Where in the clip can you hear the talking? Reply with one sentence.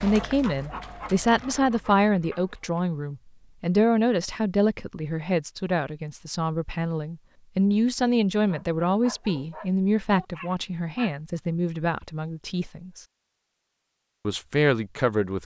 You can hear the talking from 0.0 to 13.1 s and from 14.2 to 15.3 s.